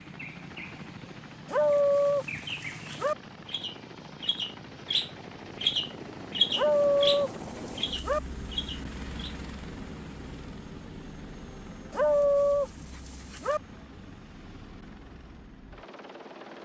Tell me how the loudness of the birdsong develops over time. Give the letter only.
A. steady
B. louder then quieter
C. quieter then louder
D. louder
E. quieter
B.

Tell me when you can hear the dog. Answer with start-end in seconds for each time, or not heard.
1.4-3.1, 6.5-8.2, 11.9-13.6.